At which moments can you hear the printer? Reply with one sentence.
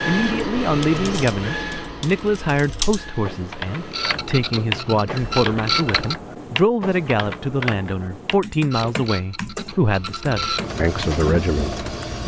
The printer can be heard from 0.0 to 6.2 s and from 8.7 to 12.2 s.